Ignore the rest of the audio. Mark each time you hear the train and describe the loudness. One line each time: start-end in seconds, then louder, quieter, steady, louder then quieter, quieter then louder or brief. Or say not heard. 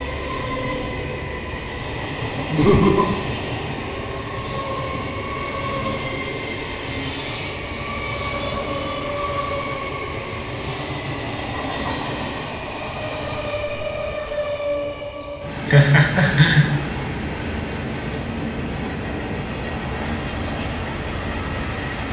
0.0-22.0 steady.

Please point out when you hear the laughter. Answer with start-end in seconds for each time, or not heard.
2.5-3.0, 15.2-16.7.